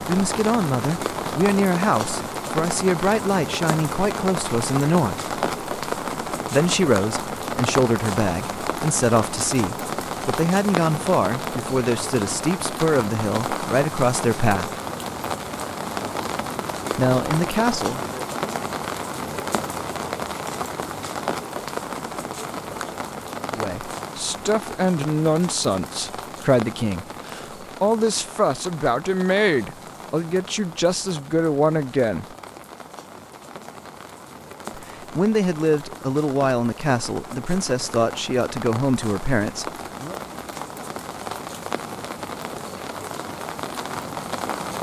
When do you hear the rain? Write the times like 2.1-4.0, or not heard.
0.0-44.7.